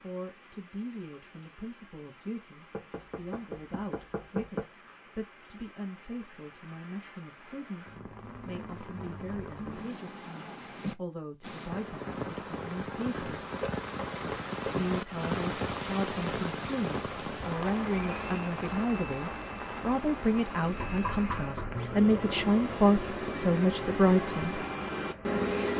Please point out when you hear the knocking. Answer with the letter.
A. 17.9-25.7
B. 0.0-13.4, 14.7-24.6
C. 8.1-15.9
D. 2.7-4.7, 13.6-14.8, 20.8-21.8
D.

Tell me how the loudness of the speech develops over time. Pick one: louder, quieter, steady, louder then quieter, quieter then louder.
louder.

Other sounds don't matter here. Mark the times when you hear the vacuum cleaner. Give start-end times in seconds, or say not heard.
17.9-25.7.